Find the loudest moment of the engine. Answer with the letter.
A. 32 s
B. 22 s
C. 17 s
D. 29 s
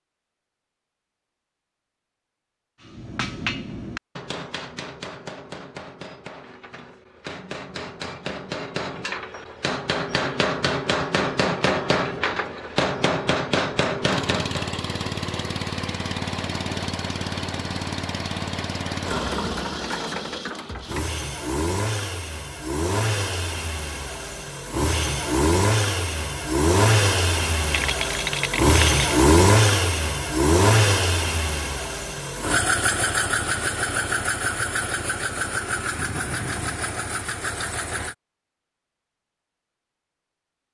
D.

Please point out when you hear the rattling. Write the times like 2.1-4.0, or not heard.
27.7-29.1.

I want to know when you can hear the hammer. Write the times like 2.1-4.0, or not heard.
2.8-14.7.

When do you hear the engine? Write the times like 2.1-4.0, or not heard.
14.1-38.1.